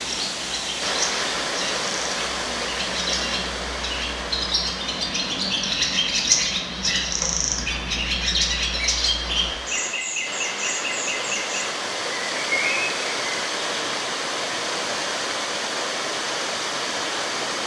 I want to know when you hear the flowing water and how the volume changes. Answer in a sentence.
The flowing water can be heard from 0.0 to 17.6 s, getting quieter then louder.